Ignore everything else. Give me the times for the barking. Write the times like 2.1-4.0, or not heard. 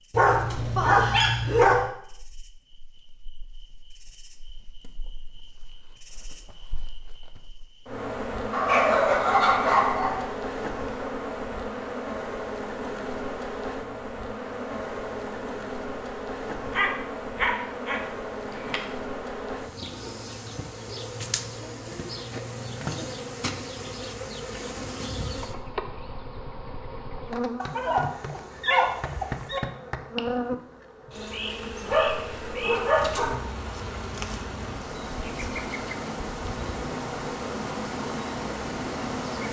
0.1-1.9, 8.5-10.3, 16.7-18.8, 27.6-29.6, 31.9-33.5.